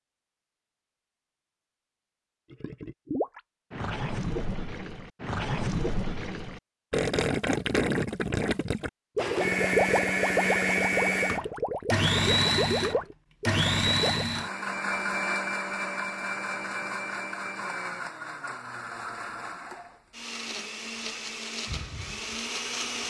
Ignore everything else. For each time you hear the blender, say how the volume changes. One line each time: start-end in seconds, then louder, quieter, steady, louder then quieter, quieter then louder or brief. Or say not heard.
9.2-23.0 quieter.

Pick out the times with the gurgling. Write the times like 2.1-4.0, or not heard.
2.5-14.2.